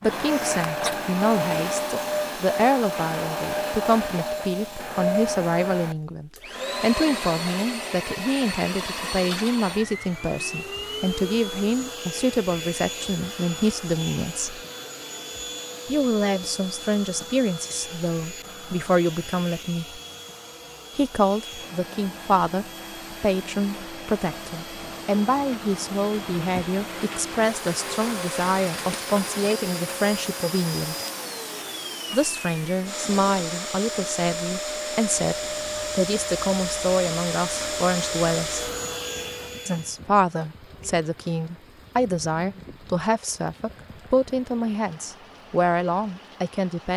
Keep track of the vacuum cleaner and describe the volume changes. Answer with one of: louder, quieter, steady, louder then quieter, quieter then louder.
quieter then louder.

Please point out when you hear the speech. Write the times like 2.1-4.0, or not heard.
0.0-14.6, 15.8-20.0, 20.9-31.1, 32.1-38.6, 39.6-46.9.